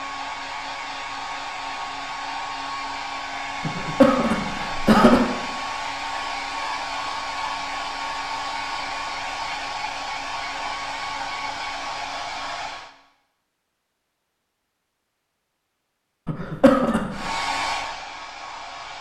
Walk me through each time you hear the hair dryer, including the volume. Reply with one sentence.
You can hear the hair dryer from 0.0 to 12.9 s, at a steady volume; and briefly from 17.1 to 18.9 s.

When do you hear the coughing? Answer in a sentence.
You can hear the coughing from 3.6 to 5.2 s and from 16.2 to 17.3 s.